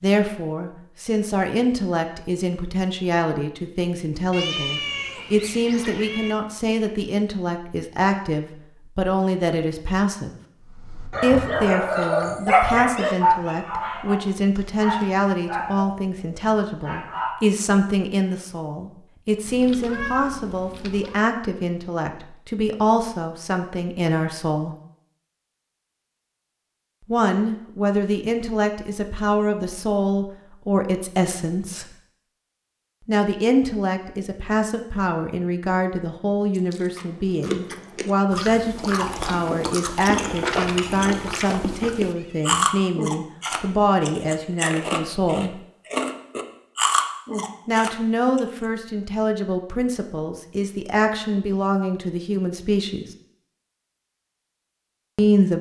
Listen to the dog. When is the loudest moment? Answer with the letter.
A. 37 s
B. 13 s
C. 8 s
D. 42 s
B.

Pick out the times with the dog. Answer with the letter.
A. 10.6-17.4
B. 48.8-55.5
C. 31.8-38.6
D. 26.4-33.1
A.